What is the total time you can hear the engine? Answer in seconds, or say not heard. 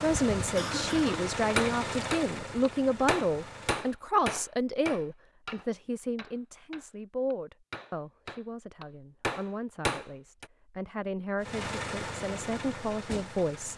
6 s.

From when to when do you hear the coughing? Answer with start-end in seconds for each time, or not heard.
0.6-1.4.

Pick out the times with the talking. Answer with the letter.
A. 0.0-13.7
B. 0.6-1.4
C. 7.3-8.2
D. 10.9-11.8
A.